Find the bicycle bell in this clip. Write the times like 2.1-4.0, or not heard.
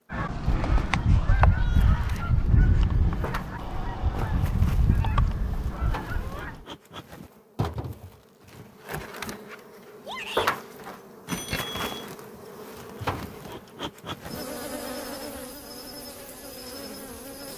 11.2-11.9.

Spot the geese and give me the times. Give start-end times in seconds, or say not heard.
0.1-6.7.